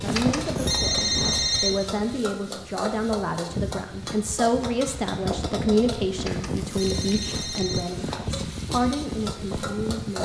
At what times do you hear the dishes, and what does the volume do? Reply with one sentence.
You can't hear the dishes here.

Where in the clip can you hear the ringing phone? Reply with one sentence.
The ringing phone can be heard from 0.1 to 1.8 s and from 6.2 to 7.9 s.